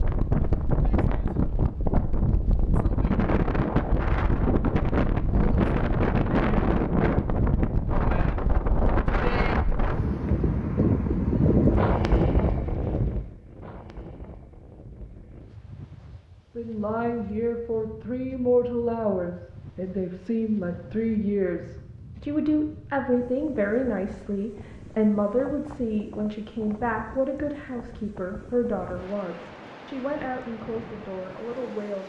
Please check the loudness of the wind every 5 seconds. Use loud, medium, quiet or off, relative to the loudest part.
loud, loud, loud, quiet, quiet, quiet, quiet.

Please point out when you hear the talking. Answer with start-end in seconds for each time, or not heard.
16.6-32.0.